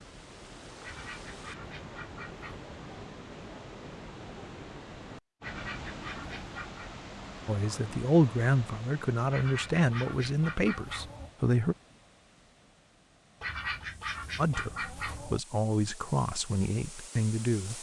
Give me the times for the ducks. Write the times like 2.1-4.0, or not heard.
0.8-2.7, 5.4-6.9, 9.3-11.3, 13.4-15.4.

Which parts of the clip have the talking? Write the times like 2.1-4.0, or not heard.
7.5-11.8, 14.3-17.7.